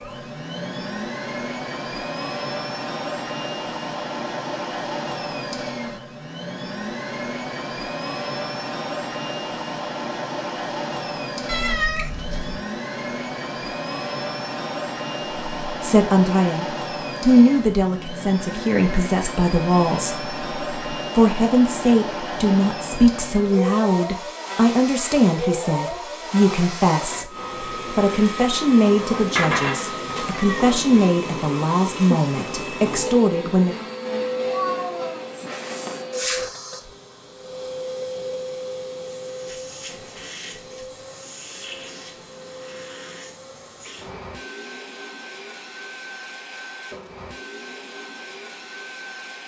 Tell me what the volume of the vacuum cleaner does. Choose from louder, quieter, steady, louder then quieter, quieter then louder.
quieter.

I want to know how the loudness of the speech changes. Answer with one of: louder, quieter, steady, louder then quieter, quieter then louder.
steady.